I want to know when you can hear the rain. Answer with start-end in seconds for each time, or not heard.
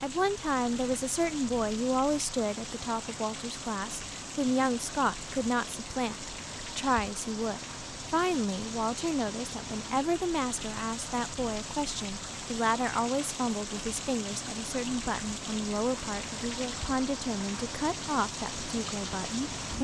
0.0-19.7.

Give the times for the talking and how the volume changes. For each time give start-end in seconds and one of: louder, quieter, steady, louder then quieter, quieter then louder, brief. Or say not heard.
0.0-19.7 steady.